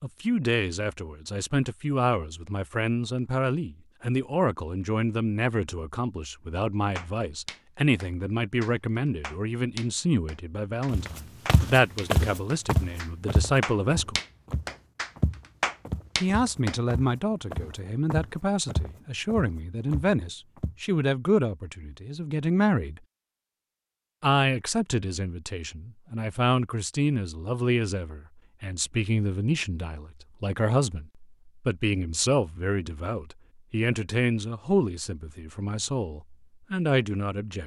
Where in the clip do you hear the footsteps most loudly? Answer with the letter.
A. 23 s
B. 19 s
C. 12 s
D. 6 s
C.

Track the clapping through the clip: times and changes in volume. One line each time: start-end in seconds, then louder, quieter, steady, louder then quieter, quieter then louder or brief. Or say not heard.
7.0-16.8 louder.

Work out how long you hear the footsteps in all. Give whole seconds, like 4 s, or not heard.
10 s.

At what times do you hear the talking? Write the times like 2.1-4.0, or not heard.
0.0-14.2, 16.2-23.0, 24.2-37.6.